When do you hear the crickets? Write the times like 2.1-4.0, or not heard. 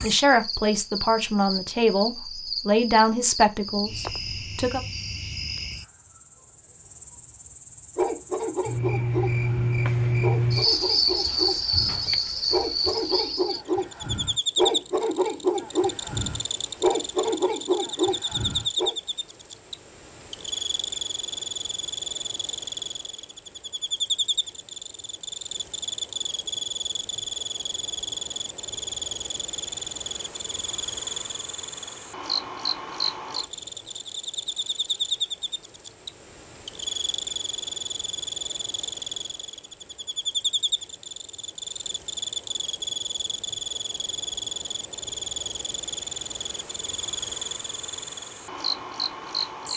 0.0-49.7.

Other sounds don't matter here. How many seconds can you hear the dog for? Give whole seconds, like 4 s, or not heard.
11 s.